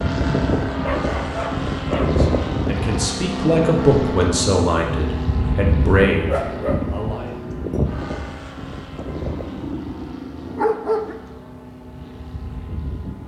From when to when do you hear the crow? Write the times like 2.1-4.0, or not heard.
not heard.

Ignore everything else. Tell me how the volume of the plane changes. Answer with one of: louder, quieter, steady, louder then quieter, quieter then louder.
quieter.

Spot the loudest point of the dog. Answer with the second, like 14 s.
11 s.